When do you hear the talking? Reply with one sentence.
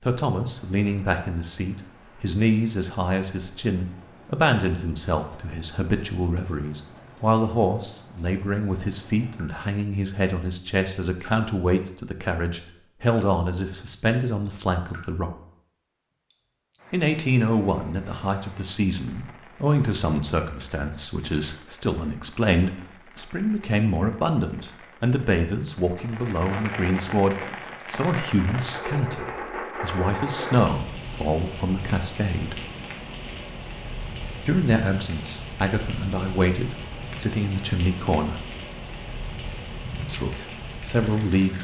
The talking can be heard from 0.0 to 15.3 s, from 16.9 to 32.6 s, from 34.4 to 38.5 s and from 40.0 to 41.5 s.